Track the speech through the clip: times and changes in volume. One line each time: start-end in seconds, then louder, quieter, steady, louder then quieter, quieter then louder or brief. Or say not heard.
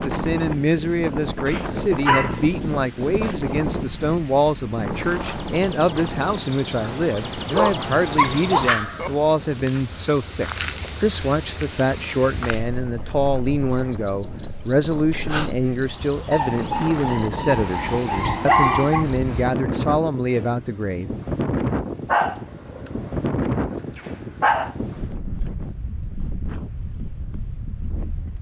0.0-21.1 steady.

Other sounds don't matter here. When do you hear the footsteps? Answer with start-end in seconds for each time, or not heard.
not heard.